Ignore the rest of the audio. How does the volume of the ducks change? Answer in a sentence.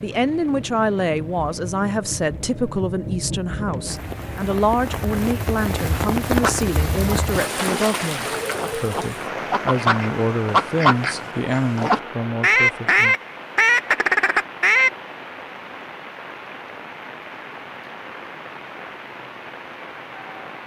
The loudness of the ducks goes up.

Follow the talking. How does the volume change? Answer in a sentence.
The volume of the talking stays about the same.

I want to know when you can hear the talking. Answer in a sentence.
You can hear the talking from 0.0 to 13.2 s.